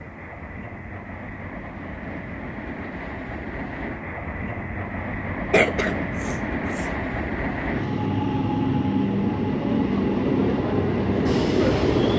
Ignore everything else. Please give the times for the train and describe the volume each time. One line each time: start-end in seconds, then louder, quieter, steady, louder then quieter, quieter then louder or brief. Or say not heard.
0.0-12.1 louder.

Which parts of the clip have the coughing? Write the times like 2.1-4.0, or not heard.
5.5-6.9.